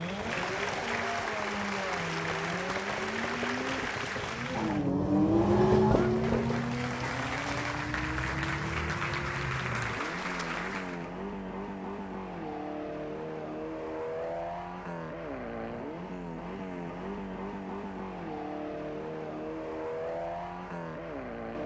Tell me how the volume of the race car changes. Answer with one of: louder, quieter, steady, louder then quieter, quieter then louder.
louder then quieter.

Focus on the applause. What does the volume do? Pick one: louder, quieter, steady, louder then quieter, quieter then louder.
quieter then louder.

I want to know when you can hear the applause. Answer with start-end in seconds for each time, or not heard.
0.0-11.1.